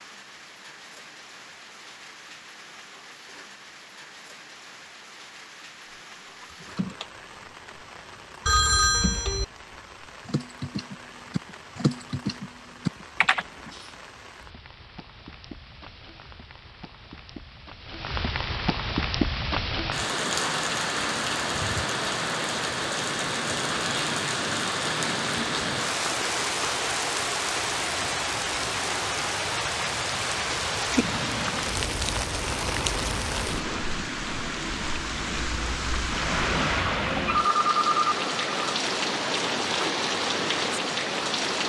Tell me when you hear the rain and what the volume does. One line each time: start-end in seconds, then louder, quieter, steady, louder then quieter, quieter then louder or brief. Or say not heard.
0.0-41.6 louder.